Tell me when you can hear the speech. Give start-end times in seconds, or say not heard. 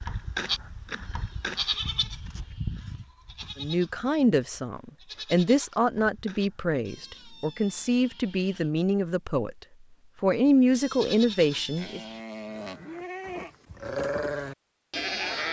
3.5-9.6, 10.2-12.0.